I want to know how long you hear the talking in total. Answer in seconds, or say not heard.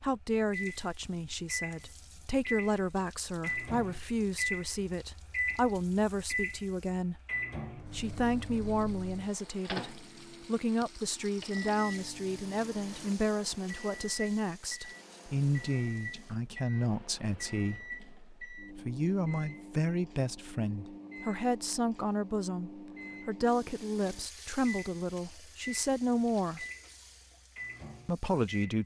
27 s.